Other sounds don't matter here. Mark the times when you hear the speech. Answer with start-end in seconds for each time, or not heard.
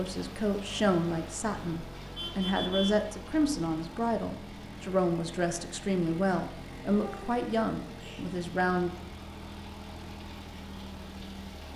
0.0-8.9.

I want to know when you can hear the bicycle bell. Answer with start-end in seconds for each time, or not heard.
not heard.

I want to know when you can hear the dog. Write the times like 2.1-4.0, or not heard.
not heard.